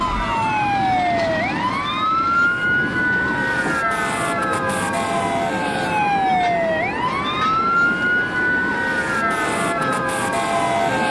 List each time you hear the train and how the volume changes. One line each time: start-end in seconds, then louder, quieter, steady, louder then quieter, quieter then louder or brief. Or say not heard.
0.0-11.0 steady.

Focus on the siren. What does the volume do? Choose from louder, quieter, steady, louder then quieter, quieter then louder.
steady.